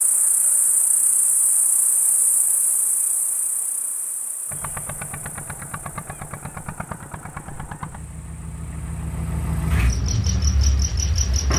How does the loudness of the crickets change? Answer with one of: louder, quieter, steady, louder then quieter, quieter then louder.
quieter then louder.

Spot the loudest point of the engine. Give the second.
10 s.